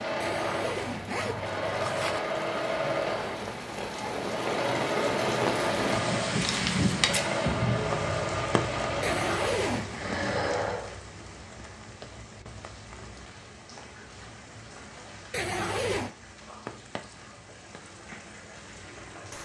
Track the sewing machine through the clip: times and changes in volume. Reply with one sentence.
The sewing machine can be heard from 0.0 to 10.9 s, at a steady volume.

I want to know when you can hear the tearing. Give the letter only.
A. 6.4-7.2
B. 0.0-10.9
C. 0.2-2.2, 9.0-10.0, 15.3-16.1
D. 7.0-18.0
A.